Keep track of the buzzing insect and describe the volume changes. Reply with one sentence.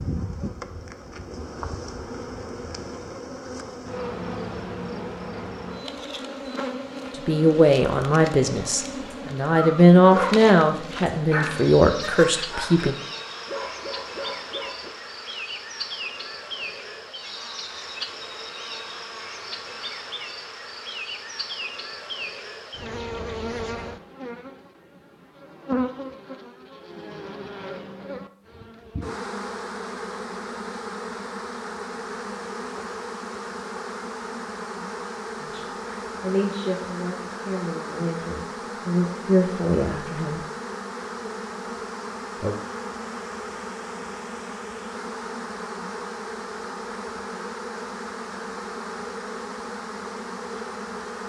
The loudness of the buzzing insect stays about the same.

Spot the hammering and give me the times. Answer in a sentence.
You can't hear the hammering here.